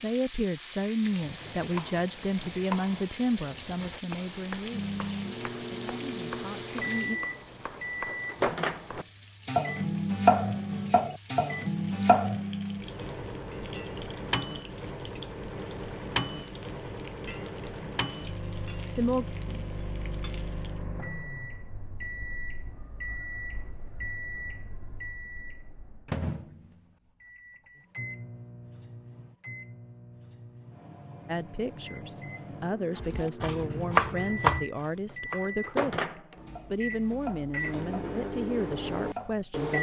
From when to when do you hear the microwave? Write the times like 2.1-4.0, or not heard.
4.7-39.7.